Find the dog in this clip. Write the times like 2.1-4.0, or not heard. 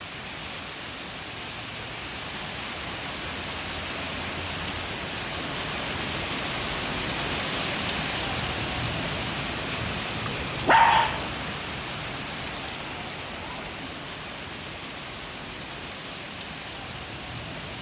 10.2-11.3.